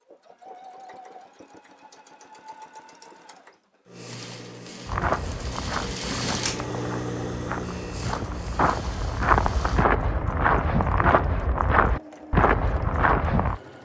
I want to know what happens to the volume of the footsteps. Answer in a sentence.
The loudness of the footsteps goes up.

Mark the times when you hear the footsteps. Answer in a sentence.
The footsteps can be heard from 4.8 to 13.6 s.